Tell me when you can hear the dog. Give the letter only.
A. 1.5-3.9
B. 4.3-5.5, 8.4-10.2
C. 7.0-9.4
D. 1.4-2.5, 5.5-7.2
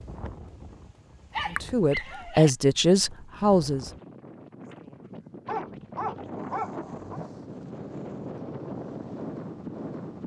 D.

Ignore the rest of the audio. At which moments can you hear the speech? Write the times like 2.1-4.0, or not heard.
1.5-3.9.